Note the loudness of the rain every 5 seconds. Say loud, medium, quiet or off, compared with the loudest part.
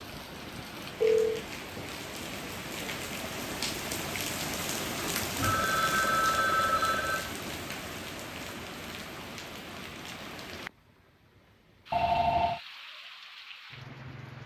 loud, loud, medium.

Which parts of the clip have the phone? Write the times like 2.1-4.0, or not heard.
0.1-1.4, 5.4-7.3, 11.9-12.6.